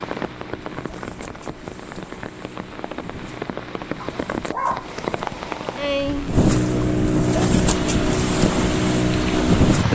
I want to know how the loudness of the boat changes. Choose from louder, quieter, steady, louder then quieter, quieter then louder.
louder.